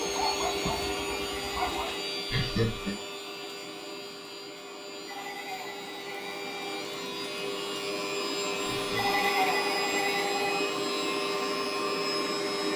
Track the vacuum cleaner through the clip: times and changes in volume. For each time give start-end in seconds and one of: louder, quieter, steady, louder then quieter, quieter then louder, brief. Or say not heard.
0.0-12.7 quieter then louder.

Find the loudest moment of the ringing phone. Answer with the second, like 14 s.
9 s.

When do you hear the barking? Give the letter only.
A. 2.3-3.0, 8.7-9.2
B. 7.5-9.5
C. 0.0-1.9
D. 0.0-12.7
C.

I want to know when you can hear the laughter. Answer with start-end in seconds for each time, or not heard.
2.3-3.0, 8.7-9.2.